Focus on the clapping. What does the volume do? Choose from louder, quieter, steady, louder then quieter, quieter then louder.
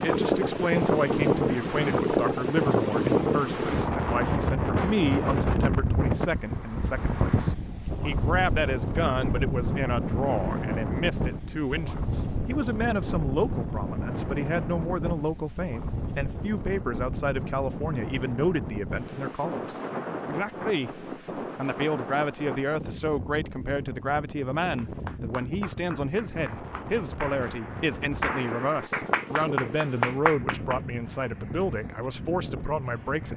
louder.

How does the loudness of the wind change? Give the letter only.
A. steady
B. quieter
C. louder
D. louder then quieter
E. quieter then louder
B.